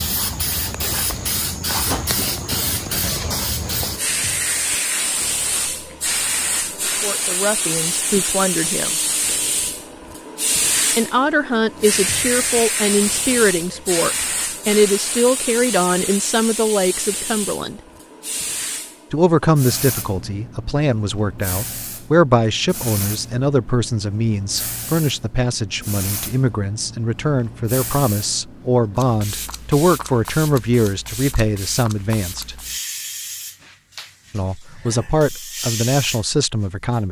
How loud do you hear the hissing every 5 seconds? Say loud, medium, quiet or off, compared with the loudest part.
loud, loud, loud, medium, medium, medium, medium, medium.